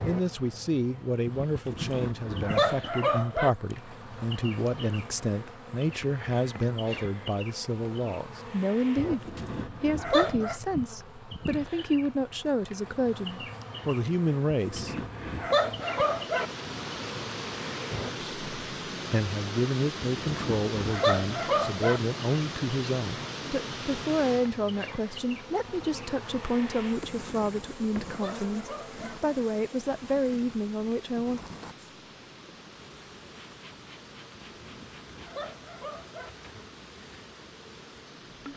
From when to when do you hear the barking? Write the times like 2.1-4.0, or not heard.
1.6-3.5, 9.1-10.6, 14.5-16.5, 20.0-22.0, 27.4-29.1, 34.5-36.3.